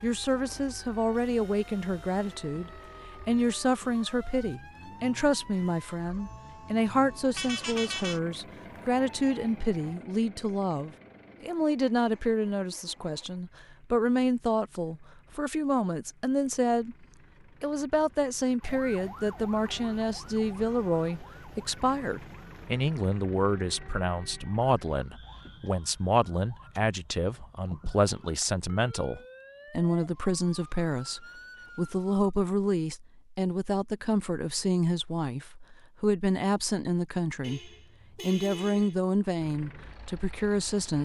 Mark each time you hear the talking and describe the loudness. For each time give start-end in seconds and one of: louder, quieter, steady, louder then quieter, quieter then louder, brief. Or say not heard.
0.0-16.9 steady
17.6-41.0 steady.